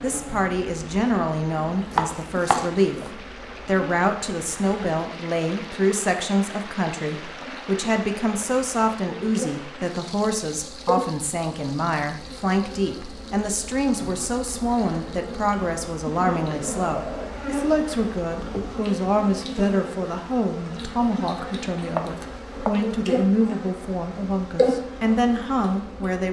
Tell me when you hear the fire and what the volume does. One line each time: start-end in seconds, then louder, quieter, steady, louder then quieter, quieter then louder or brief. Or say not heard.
not heard.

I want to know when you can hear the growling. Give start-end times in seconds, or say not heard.
16.5-17.5.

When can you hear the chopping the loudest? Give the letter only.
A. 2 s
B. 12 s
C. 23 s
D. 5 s
A.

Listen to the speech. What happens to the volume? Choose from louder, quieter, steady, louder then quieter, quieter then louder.
steady.